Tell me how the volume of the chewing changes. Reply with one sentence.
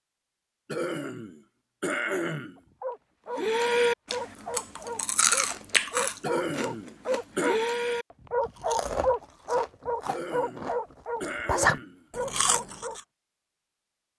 The volume of the chewing goes down, then up.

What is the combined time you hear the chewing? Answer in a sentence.
The chewing can be heard for 10 seconds in total.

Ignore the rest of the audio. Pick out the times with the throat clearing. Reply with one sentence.
The throat clearing can be heard from 0.7 to 2.6 s, from 6.2 to 7.6 s and from 10.1 to 12.1 s.